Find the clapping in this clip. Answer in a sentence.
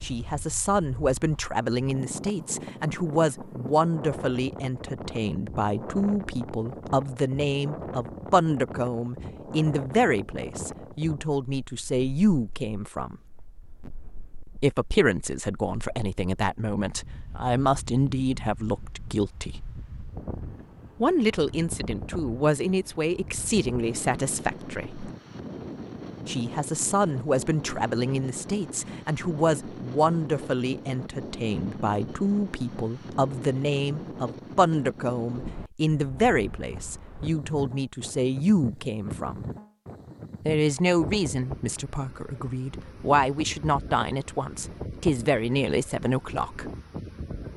You can't hear the clapping here.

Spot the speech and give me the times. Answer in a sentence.
The speech can be heard from 0.0 to 13.2 s, from 14.6 to 19.8 s, from 21.0 to 25.1 s, from 26.2 to 39.5 s and from 40.5 to 46.7 s.